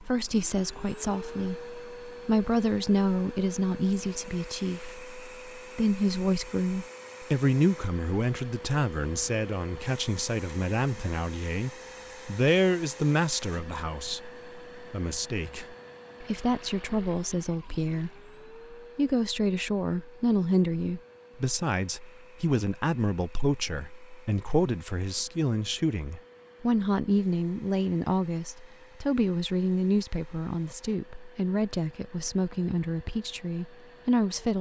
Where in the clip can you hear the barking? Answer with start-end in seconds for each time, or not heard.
not heard.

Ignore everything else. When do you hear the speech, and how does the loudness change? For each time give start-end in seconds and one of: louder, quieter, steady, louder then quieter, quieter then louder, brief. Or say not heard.
0.0-34.5 steady.